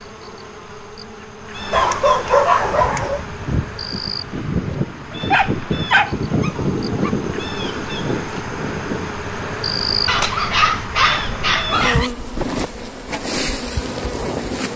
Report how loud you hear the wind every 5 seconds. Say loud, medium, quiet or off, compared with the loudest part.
loud, loud, medium.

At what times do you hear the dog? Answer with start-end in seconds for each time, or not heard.
1.7-3.2, 5.1-7.1, 10.1-12.1.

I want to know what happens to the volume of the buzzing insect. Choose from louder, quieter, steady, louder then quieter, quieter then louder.
louder.